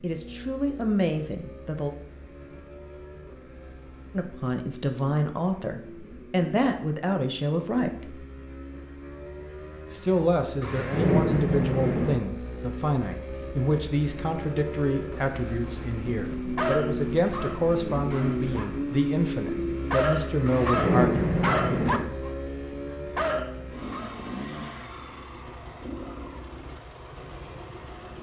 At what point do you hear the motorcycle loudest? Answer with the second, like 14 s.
19 s.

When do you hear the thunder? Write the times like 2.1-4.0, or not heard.
10.6-12.2, 20.4-22.1.